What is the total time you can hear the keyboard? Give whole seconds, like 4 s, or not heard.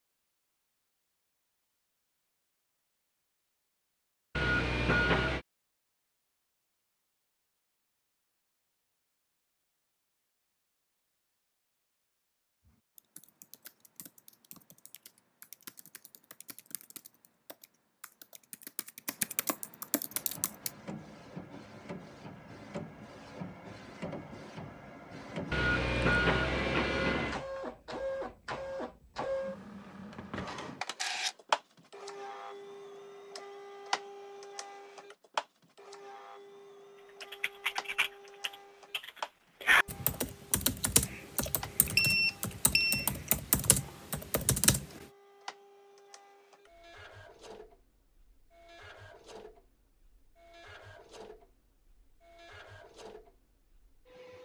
16 s.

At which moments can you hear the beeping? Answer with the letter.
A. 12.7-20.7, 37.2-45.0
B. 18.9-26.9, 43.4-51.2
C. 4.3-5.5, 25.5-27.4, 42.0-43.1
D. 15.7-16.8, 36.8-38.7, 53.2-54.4
C.